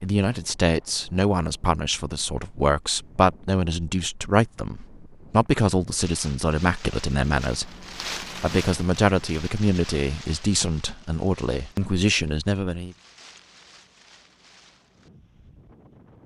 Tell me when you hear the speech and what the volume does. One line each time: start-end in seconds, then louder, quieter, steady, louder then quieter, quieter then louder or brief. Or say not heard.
0.0-12.9 steady.